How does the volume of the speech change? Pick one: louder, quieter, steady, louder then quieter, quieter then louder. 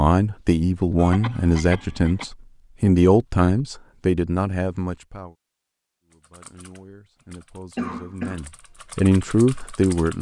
quieter then louder.